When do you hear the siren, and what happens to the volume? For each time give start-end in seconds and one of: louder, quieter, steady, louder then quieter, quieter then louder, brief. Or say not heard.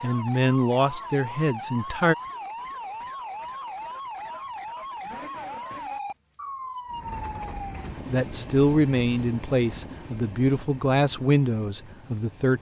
0.0-7.9 steady.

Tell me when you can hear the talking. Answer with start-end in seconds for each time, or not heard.
0.0-2.1, 8.1-12.5.